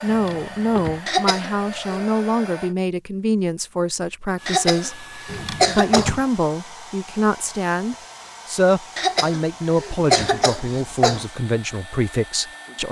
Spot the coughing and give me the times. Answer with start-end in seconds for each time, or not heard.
1.1-2.0, 4.5-6.1, 8.9-11.2.